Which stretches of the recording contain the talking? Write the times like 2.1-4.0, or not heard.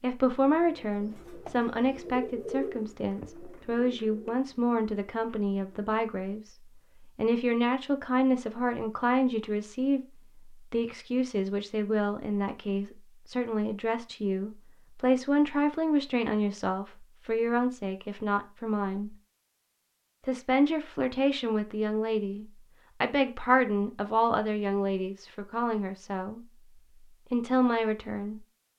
0.0-19.1, 20.2-26.4, 27.3-28.4.